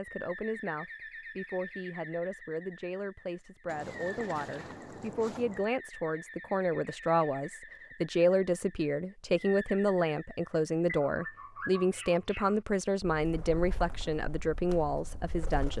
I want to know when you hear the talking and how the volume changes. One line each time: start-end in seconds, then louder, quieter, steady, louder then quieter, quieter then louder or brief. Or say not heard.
0.0-15.7 louder.